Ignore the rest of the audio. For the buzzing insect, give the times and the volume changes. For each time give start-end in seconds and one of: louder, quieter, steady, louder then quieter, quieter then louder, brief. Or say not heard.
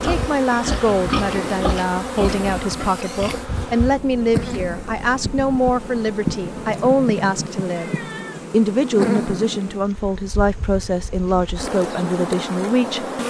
0.0-13.2 steady.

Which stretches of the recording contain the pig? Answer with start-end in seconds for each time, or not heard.
0.0-3.5.